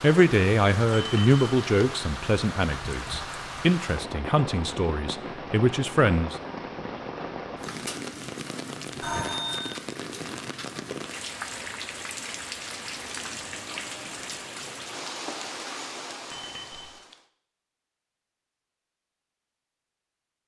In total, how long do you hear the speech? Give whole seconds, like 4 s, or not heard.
6 s.